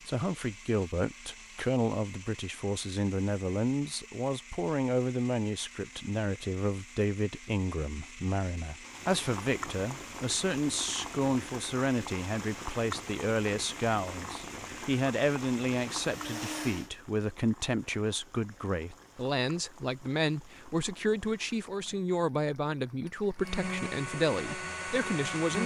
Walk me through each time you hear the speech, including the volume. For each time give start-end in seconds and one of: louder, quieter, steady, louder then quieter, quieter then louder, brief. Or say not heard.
0.1-25.6 steady.